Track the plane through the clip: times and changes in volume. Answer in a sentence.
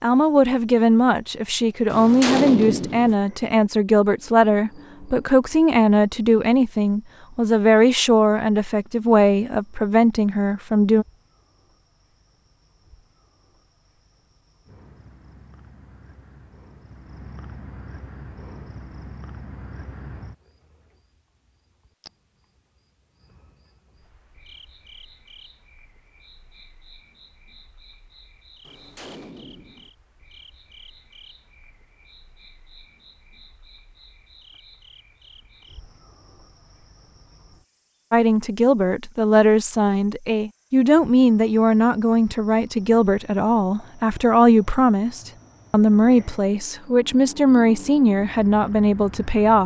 You can't hear the plane here.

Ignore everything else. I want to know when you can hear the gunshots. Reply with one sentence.
The gunshots can be heard from 1.9 to 3.1 s and from 28.6 to 29.9 s.